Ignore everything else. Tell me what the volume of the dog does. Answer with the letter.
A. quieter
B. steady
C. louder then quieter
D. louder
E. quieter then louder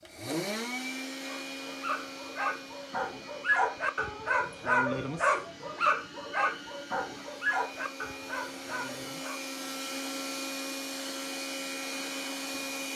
C.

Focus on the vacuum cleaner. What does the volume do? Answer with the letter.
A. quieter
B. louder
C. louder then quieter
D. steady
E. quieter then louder
E.